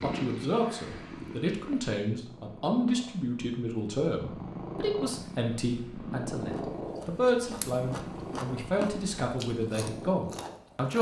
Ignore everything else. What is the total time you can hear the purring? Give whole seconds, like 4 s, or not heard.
11 s.